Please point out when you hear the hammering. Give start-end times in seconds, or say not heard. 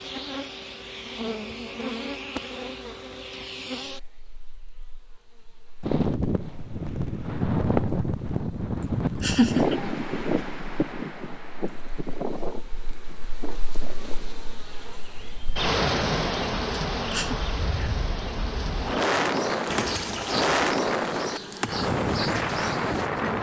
not heard.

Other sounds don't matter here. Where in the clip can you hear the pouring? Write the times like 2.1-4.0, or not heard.
19.7-20.7.